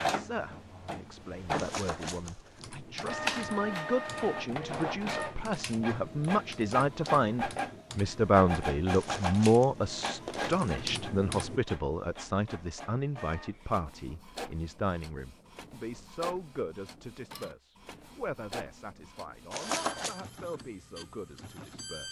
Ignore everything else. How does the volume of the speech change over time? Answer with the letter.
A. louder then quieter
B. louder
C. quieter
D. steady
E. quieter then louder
A.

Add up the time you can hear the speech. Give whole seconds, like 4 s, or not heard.
22 s.